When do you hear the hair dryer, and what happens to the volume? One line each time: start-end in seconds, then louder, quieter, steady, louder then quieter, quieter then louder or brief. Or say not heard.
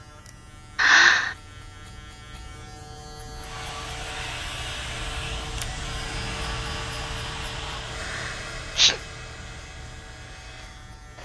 3.4-11.2 quieter.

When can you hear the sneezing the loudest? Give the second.
1 s.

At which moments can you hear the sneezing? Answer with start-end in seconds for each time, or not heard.
0.8-1.4, 8.0-9.0.